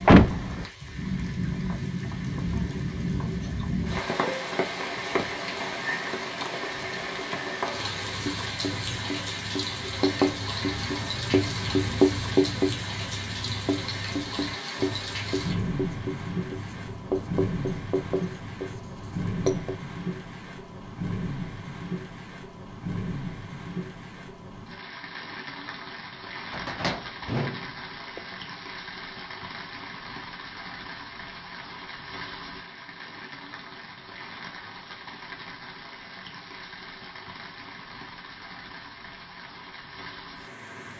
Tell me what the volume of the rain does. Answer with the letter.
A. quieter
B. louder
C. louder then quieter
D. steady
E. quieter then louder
A.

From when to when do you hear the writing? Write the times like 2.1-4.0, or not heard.
7.7-19.8.